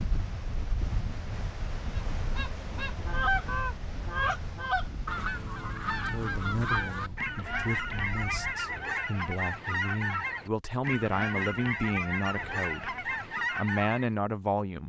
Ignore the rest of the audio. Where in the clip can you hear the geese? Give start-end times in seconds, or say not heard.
2.1-14.1.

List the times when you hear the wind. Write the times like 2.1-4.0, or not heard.
0.0-8.6.